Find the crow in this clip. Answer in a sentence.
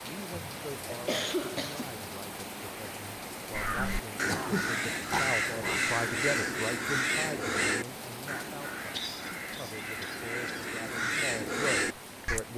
You can hear the crow from 3.5 to 12.4 s.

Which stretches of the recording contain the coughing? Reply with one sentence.
You can hear the coughing from 0.3 to 1.9 s, from 4.2 to 5.8 s and from 8.9 to 10.7 s.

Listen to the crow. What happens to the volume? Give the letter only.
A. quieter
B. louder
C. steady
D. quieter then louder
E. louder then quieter
D.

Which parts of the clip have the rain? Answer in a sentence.
The rain can be heard from 0.0 to 12.5 s.